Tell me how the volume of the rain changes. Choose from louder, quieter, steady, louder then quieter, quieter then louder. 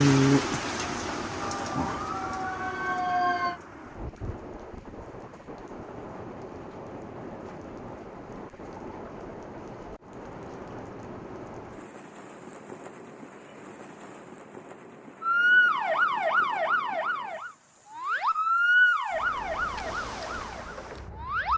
quieter.